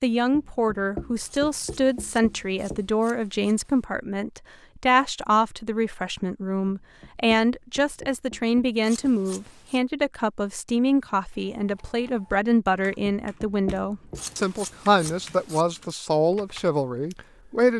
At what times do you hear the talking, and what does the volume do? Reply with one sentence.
You can hear the talking from 0.0 to 17.7 s, at a steady volume.